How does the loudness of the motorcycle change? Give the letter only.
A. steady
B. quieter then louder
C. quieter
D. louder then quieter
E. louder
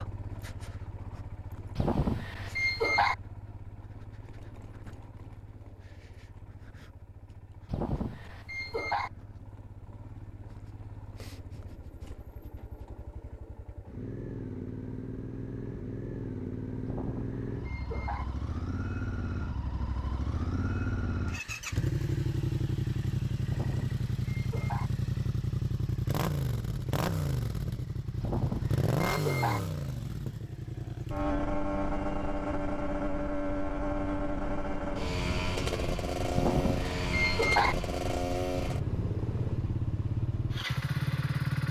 E.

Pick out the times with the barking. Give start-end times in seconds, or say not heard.
1.8-3.1, 7.7-9.1, 16.9-18.2, 23.4-24.9, 28.2-29.6, 36.3-37.8.